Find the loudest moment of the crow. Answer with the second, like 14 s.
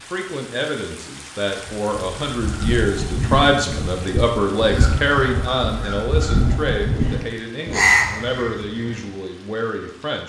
8 s.